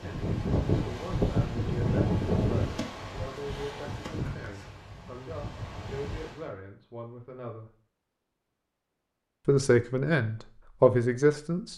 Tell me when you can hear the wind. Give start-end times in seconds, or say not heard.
0.0-6.5.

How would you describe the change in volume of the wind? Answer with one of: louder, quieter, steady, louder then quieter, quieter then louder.
quieter.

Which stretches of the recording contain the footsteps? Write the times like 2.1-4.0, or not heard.
not heard.